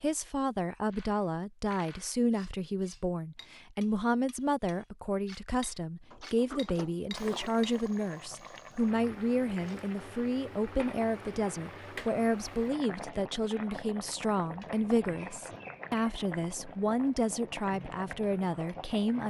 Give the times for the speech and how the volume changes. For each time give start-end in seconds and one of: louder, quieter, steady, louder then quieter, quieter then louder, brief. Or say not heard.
0.0-19.2 steady.